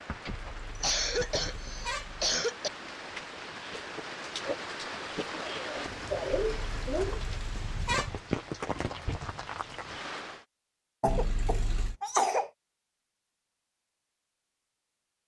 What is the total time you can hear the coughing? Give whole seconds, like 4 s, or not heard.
5 s.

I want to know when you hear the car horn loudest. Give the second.
8 s.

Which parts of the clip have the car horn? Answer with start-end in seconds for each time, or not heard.
0.2-2.4, 6.5-8.2, 11.1-12.0.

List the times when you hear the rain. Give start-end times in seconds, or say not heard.
0.0-10.4.